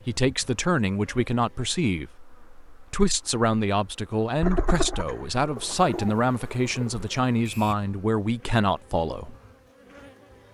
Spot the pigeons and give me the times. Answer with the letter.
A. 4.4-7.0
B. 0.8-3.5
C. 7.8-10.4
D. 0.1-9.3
A.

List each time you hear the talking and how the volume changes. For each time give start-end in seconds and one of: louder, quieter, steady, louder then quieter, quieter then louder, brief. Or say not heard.
0.1-9.3 steady.